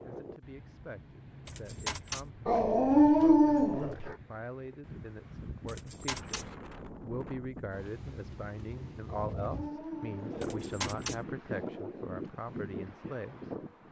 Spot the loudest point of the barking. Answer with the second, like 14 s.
3 s.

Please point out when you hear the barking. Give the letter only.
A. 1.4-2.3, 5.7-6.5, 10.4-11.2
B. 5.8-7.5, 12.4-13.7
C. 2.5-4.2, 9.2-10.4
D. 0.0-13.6
C.